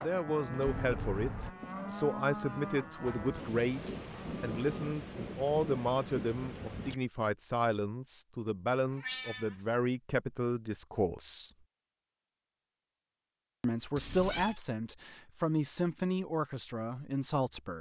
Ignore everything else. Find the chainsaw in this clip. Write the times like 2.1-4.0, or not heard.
not heard.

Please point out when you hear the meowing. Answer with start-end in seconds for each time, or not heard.
0.7-1.6, 8.9-9.6, 13.9-14.6.